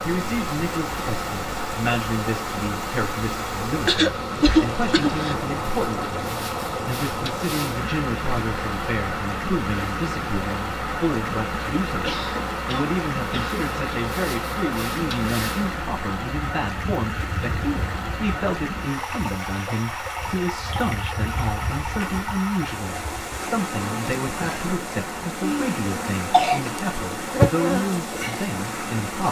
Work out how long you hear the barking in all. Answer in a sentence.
The barking can't be heard in this clip.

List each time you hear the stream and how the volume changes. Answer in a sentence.
The stream can be heard from 0.0 to 29.2 s, at a steady volume.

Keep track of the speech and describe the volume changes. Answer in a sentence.
The loudness of the speech stays about the same.